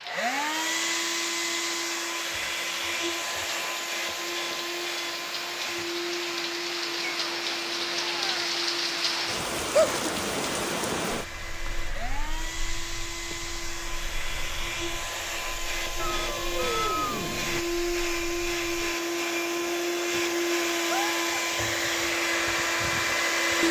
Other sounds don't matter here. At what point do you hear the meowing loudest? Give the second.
17 s.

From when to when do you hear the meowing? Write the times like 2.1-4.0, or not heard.
6.8-8.4, 15.9-17.6.